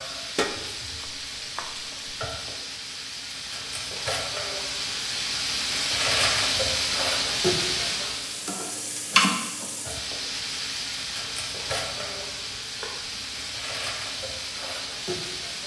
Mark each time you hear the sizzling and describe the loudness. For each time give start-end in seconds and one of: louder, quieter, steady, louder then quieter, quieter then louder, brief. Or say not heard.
0.0-15.6 louder then quieter.